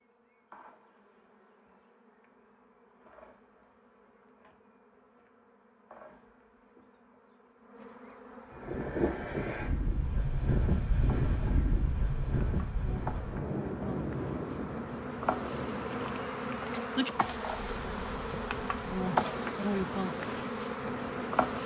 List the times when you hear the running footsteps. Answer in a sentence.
The running footsteps can't be heard in this clip.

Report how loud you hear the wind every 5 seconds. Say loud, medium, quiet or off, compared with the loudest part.
off, loud, loud, medium, medium.